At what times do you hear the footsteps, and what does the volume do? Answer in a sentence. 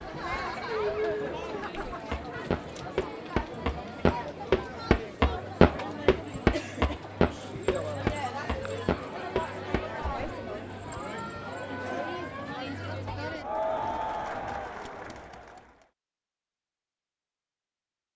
You can hear the footsteps from 1.9 to 10.1 s, getting louder then quieter.